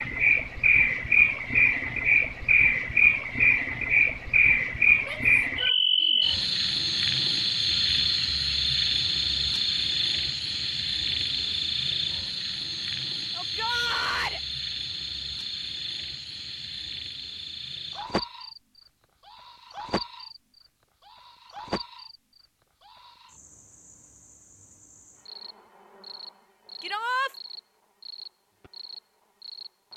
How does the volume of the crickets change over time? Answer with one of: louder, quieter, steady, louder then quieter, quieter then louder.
quieter.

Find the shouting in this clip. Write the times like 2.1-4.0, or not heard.
5.0-6.2, 13.3-14.4, 26.8-27.3.